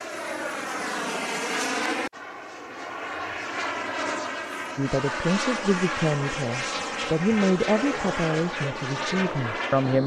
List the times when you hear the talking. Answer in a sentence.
You can hear the talking from 4.8 to 10.0 s.